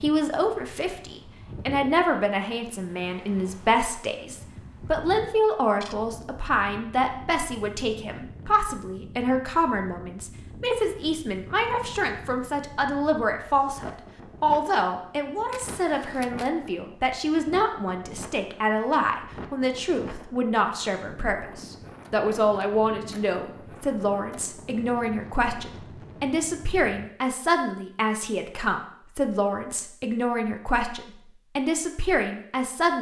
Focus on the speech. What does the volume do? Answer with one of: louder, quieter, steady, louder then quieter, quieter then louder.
steady.